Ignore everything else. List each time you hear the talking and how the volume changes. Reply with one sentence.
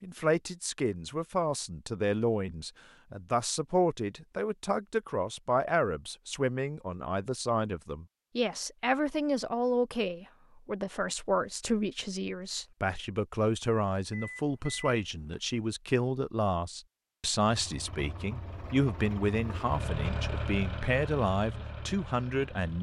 The talking can be heard from 0.0 to 22.7 s, at a steady volume.